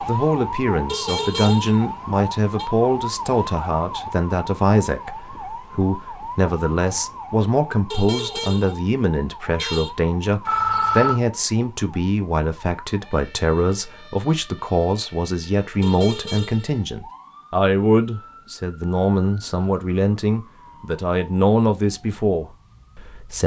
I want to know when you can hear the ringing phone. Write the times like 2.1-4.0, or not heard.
10.4-11.2.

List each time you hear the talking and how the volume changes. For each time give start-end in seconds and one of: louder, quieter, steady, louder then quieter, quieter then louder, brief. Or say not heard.
0.0-23.4 steady.